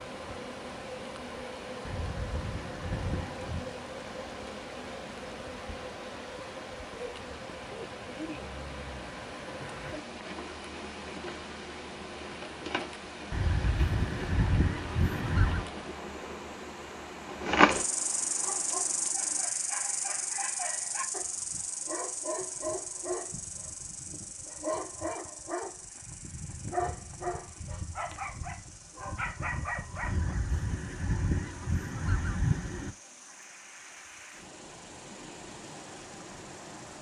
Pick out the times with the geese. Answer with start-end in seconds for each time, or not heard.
1.9-3.7, 13.3-15.7, 30.0-33.0.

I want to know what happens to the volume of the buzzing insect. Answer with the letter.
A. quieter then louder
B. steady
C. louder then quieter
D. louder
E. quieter
C.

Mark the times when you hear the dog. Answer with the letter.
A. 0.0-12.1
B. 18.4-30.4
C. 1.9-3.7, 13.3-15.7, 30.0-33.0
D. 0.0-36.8
B.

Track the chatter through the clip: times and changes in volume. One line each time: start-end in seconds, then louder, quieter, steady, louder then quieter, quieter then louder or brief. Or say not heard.
not heard.